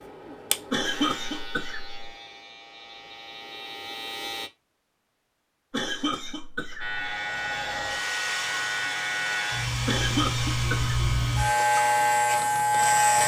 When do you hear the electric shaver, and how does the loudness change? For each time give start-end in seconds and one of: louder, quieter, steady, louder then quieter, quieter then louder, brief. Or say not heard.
0.0-4.5 quieter then louder
6.8-13.2 louder.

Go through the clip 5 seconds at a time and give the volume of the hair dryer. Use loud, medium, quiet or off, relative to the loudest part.
off, loud, loud.